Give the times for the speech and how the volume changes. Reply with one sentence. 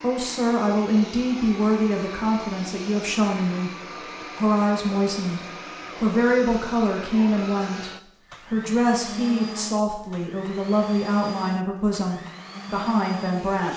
The speech can be heard from 0.0 to 13.7 s, at a steady volume.